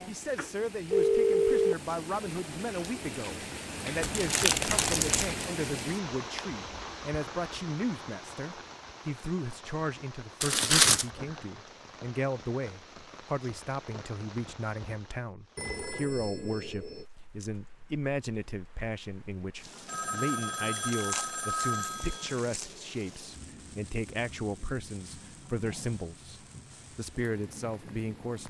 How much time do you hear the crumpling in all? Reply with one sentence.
The crumpling can be heard for 4 seconds in total.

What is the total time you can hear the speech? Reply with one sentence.
You can hear the speech for 28 seconds altogether.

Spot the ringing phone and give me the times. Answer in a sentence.
The ringing phone can be heard from 0.3 to 1.9 s, from 15.6 to 17.1 s and from 19.9 to 22.3 s.